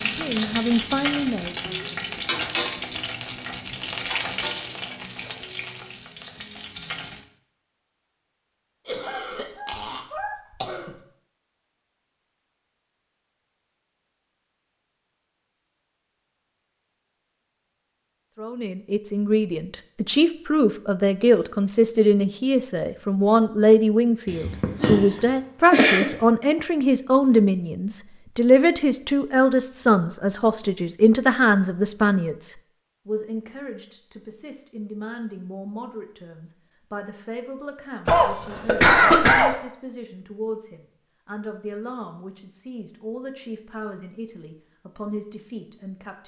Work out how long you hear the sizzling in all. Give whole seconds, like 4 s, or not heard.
7 s.